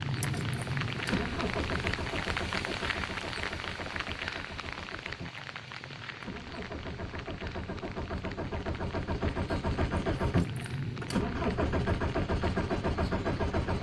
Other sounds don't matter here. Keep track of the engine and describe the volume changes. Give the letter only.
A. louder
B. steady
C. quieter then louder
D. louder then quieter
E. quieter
C.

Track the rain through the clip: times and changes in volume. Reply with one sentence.
You can hear the rain from 0.0 to 13.7 s, getting quieter.